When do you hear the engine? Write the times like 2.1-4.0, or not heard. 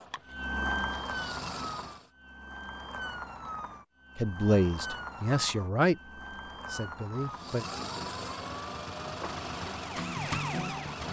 0.0-2.1, 7.2-11.0.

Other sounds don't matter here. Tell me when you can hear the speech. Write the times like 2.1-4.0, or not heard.
4.2-6.0, 6.7-7.7.